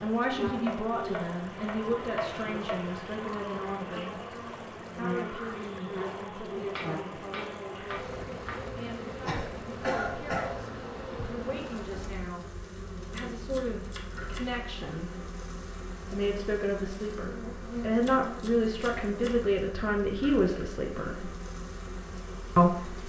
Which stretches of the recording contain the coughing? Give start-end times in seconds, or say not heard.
9.2-10.6.